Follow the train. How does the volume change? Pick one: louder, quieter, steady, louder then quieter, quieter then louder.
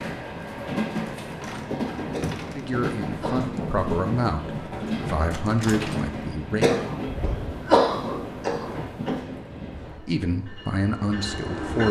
quieter.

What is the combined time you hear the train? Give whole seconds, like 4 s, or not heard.
12 s.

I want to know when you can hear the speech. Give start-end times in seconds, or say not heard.
2.5-6.8, 9.9-11.8.